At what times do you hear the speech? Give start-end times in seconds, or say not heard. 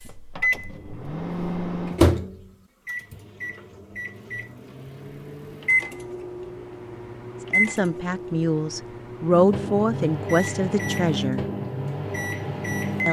7.5-11.4.